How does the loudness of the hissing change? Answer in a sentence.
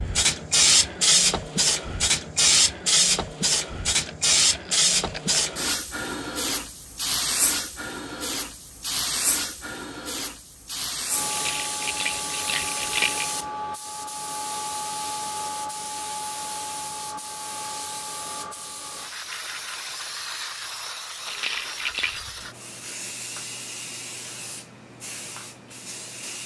The loudness of the hissing goes down.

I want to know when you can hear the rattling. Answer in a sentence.
The rattling can be heard from 4.0 to 5.4 s, from 11.2 to 13.3 s and from 21.2 to 22.2 s.